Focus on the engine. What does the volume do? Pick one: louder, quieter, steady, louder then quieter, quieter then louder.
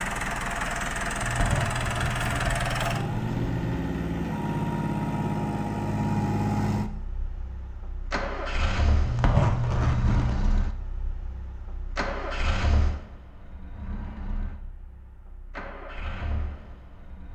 quieter.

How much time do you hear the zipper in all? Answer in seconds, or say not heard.
4 s.